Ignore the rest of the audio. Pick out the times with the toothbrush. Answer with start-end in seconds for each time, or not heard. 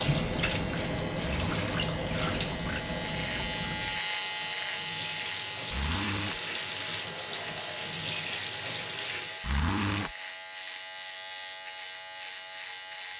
not heard.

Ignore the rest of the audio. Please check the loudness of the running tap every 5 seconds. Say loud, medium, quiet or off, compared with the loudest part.
loud, loud, off.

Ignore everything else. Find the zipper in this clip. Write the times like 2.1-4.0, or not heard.
1.2-1.9, 5.7-6.4, 9.4-10.1.